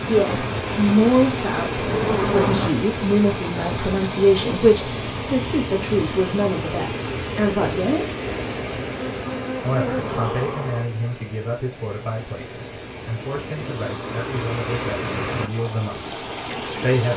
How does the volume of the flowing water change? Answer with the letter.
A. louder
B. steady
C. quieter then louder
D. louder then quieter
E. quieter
C.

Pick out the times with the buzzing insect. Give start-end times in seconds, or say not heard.
0.0-2.7, 8.2-10.8.